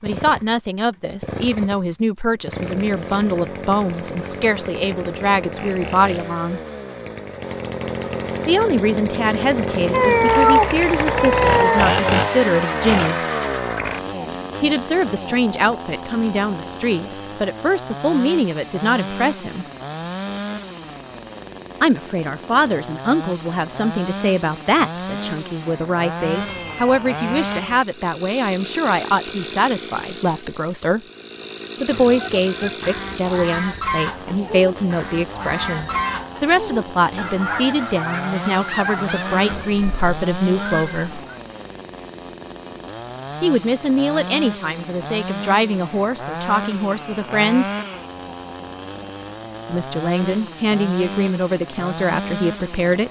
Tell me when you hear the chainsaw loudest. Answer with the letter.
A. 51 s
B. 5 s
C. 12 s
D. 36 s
C.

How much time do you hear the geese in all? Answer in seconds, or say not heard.
8 s.